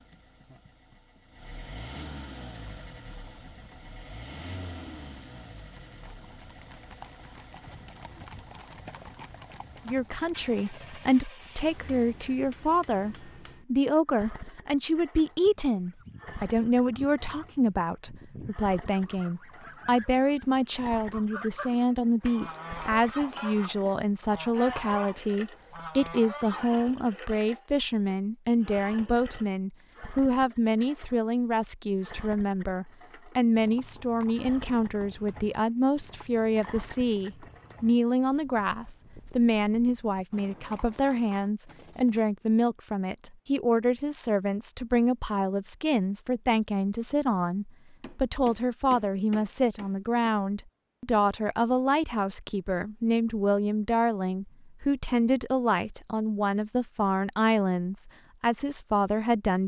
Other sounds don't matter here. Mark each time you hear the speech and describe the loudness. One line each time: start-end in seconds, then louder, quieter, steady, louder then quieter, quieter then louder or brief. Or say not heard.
9.8-59.6 steady.